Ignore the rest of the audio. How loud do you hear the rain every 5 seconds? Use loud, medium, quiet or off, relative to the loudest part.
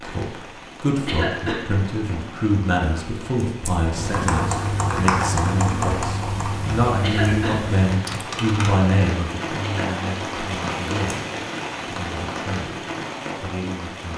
medium, loud, loud.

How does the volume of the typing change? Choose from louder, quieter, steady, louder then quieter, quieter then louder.
quieter.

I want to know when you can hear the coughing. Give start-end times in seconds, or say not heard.
1.1-1.6, 7.0-7.6, 9.6-10.2.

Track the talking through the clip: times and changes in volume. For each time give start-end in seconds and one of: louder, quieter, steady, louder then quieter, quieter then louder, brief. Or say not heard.
0.0-12.8 quieter
13.4-14.1 brief.